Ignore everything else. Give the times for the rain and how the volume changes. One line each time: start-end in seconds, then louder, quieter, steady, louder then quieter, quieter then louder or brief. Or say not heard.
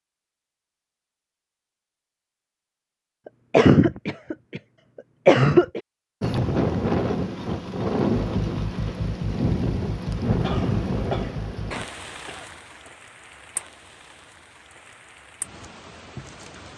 6.2-16.7 quieter.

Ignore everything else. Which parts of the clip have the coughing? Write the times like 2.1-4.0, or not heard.
3.5-4.6, 5.2-5.8, 10.2-12.9.